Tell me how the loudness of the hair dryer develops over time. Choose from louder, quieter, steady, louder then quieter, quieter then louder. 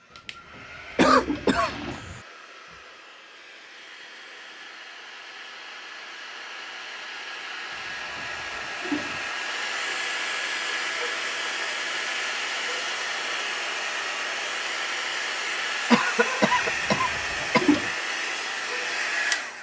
louder.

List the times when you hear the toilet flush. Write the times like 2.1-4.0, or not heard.
0.1-2.0, 7.8-9.3, 16.5-17.9.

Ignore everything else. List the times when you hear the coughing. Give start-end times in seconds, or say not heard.
0.9-2.2, 15.9-17.9.